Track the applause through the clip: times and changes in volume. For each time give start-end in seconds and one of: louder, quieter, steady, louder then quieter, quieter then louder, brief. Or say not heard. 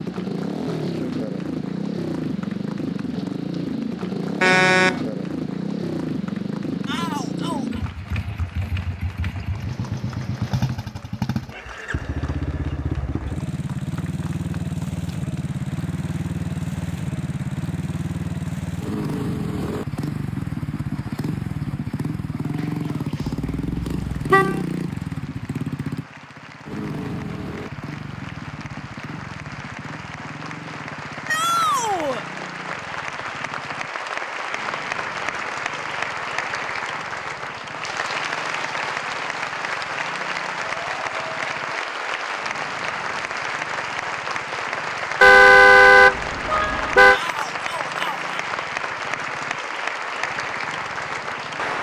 0.0-51.7 louder.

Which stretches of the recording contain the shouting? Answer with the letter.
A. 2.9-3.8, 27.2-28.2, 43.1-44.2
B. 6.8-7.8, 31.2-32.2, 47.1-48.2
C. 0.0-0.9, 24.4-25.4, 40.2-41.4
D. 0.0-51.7
B.